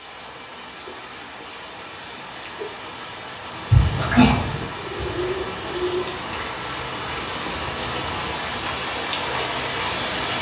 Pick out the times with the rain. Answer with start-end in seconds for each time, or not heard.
0.0-10.3.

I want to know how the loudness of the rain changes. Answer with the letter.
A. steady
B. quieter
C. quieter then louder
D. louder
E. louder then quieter
D.